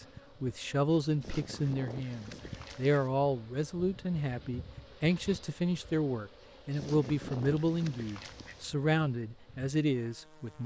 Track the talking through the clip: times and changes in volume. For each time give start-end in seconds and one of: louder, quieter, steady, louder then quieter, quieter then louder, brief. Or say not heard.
0.4-10.6 steady.